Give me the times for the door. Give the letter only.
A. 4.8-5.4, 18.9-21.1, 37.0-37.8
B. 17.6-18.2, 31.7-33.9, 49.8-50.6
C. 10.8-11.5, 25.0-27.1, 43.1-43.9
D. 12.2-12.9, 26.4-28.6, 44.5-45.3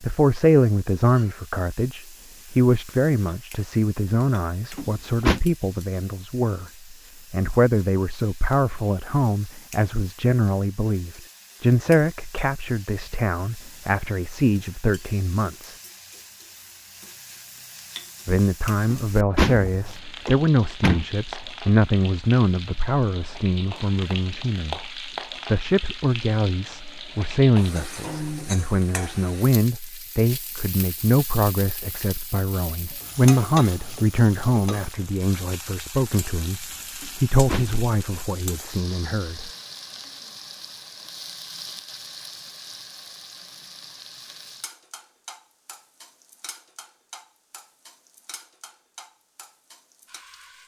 A.